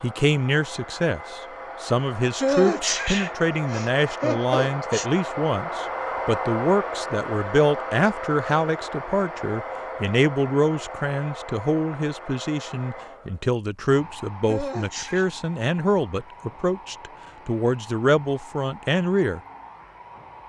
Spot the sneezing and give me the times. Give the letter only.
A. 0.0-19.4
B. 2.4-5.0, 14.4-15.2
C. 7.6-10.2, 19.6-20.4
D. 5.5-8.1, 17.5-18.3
B.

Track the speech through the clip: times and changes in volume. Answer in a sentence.
The speech can be heard from 0.0 to 19.4 s, at a steady volume.